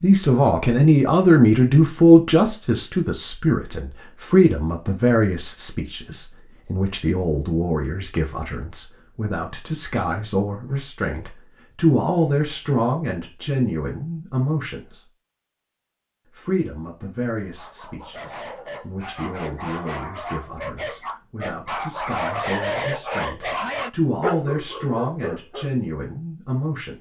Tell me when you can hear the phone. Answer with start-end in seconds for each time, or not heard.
not heard.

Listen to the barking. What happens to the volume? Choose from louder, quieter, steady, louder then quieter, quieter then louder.
louder.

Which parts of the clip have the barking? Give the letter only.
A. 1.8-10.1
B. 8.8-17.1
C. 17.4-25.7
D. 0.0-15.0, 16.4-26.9
C.